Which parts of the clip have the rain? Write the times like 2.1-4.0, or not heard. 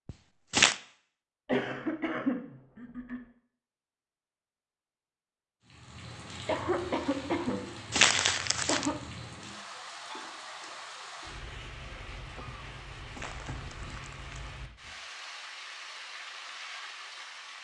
5.6-17.5.